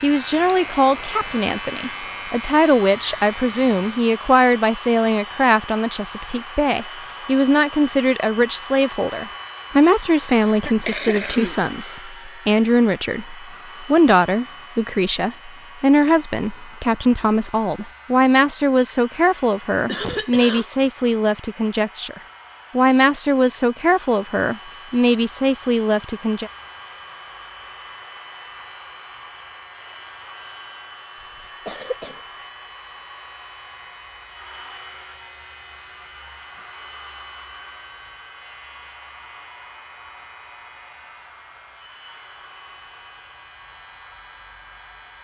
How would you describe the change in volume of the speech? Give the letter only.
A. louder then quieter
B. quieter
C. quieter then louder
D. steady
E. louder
D.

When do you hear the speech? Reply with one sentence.
The speech can be heard from 0.0 to 26.5 s.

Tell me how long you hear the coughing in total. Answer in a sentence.
The coughing can be heard for 3 seconds in total.